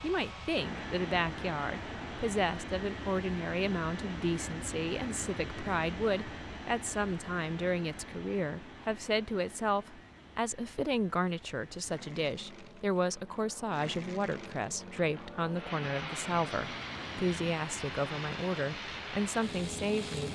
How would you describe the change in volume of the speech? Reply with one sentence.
The volume of the speech stays about the same.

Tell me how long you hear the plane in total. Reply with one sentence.
The plane can be heard for 20 seconds in total.